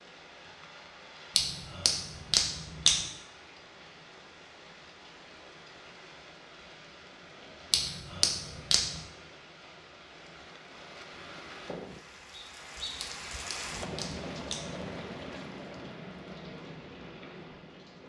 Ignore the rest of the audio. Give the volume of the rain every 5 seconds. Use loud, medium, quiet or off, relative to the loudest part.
medium, medium, loud, loud.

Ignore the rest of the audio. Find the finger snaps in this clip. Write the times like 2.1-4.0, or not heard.
1.4-3.1, 7.7-9.0, 13.0-14.8.